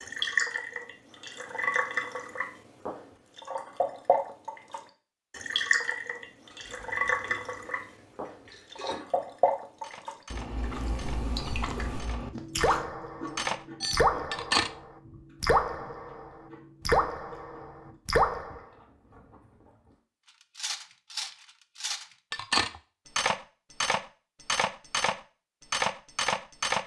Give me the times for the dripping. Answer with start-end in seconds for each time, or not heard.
0.0-18.6.